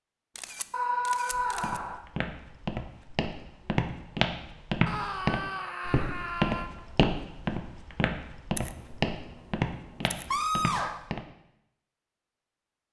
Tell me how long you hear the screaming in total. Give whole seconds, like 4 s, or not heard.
4 s.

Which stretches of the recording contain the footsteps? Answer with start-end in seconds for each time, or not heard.
1.3-11.2.